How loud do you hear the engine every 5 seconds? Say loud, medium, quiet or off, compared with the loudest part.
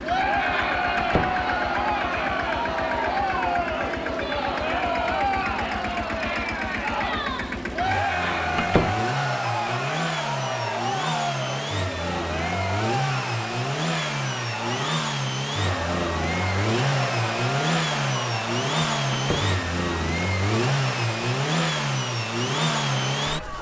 medium, medium, loud, loud, loud.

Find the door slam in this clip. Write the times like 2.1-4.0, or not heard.
0.9-1.4, 8.6-9.0, 19.1-19.6.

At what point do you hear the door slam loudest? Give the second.
9 s.